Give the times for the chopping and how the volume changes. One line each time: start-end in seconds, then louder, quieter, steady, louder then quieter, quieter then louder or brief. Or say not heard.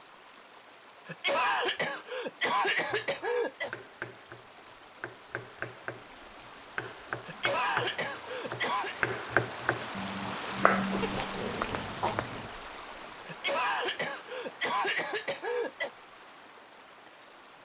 2.9-12.5 louder.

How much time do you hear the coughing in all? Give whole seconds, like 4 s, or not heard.
7 s.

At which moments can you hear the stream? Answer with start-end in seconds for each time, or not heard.
0.0-17.5.